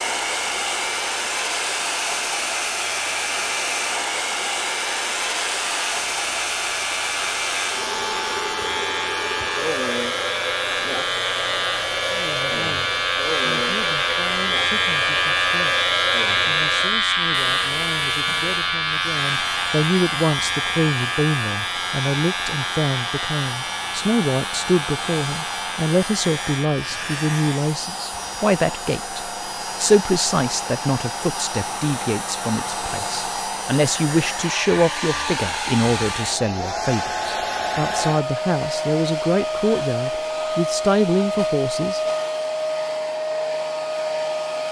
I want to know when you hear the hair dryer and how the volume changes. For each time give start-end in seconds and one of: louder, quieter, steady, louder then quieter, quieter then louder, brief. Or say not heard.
0.0-44.6 quieter then louder.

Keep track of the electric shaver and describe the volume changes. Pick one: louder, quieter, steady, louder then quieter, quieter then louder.
louder then quieter.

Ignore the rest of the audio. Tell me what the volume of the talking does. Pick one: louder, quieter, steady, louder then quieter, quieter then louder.
louder.